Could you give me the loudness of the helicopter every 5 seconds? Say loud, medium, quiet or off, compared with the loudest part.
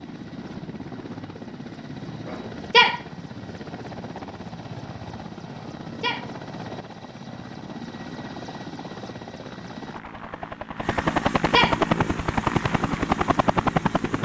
quiet, quiet, loud.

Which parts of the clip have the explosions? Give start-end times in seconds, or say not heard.
not heard.